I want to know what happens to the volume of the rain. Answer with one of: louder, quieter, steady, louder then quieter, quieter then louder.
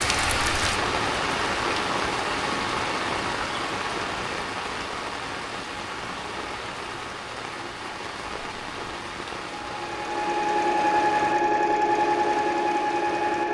quieter.